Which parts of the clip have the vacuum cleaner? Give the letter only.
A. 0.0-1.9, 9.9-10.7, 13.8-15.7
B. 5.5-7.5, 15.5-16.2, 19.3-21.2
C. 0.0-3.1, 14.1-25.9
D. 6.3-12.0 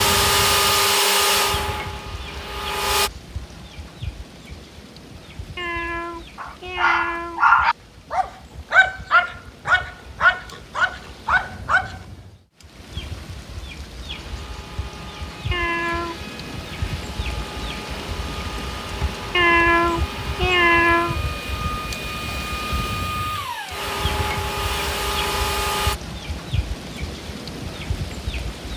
C.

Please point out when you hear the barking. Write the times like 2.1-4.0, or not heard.
6.3-12.0.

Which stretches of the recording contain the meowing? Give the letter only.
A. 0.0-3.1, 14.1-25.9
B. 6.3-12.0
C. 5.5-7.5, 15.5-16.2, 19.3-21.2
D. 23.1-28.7
C.